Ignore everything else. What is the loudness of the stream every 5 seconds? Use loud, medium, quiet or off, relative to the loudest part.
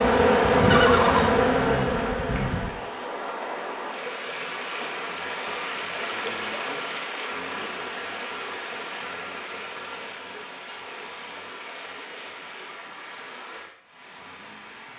loud, loud, medium.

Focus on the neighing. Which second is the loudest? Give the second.
1 s.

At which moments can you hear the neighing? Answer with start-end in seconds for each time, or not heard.
0.7-2.7.